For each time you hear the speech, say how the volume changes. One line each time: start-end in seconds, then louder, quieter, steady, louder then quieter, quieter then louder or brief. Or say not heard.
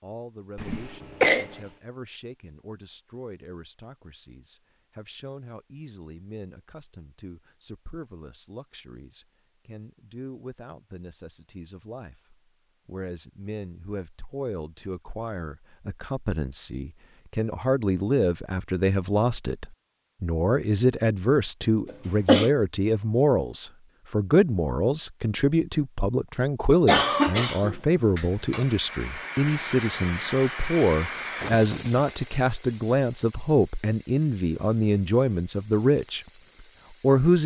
0.0-36.2 louder
36.9-37.4 brief.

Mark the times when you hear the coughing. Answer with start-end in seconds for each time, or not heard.
0.6-1.6, 21.9-22.5, 26.9-28.6.